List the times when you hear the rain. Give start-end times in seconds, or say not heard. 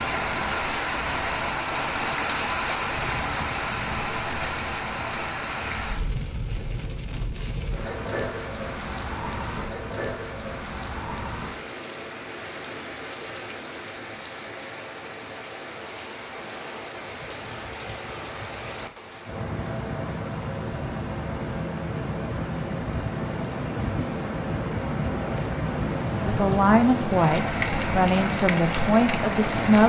0.0-29.8.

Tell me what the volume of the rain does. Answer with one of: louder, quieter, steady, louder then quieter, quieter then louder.
quieter then louder.